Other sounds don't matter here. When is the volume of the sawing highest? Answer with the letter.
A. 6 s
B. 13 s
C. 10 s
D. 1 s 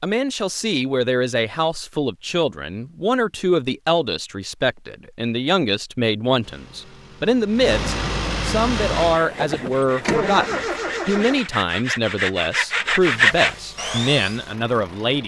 B.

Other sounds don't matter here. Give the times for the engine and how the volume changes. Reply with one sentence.
You can hear the engine from 6.4 to 11.4 s, getting louder; and briefly from 13.0 to 15.2 s.